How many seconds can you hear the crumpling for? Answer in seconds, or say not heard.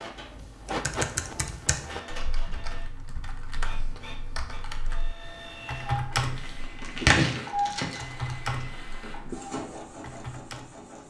2 s.